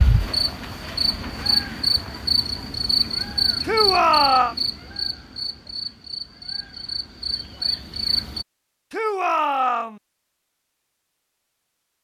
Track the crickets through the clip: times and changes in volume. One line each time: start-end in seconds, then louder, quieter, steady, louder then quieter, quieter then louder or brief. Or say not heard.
0.0-8.4 quieter.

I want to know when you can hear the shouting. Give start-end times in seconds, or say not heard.
3.6-4.5, 8.9-10.0.